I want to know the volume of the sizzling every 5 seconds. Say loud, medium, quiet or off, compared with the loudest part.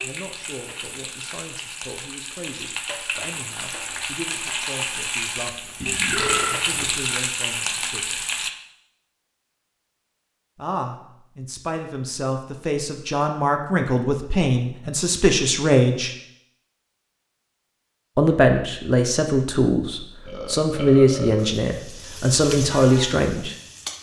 medium, loud, off, off, medium.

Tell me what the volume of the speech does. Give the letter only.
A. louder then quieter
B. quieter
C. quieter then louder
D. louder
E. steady
D.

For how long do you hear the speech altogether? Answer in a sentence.
You can hear the speech for 19 seconds altogether.